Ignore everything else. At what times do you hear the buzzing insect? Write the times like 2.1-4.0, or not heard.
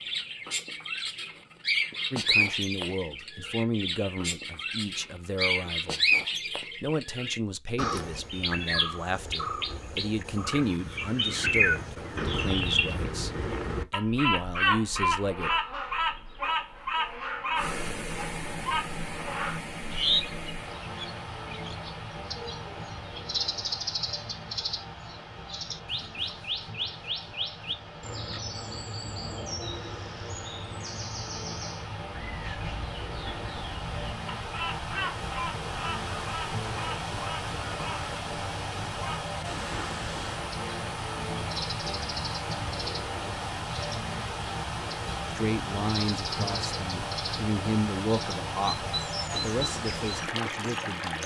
not heard.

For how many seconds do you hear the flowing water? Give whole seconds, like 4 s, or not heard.
34 s.